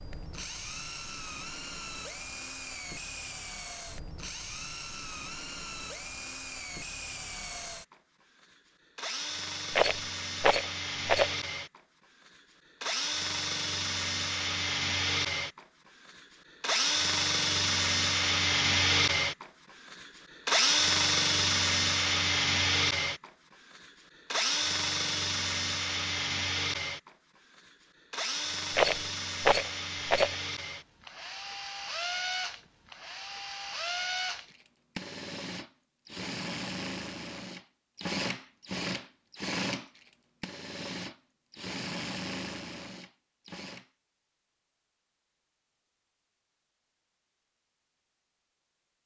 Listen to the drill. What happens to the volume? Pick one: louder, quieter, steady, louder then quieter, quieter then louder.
louder then quieter.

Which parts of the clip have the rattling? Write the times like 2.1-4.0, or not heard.
9.7-11.3, 28.7-30.4.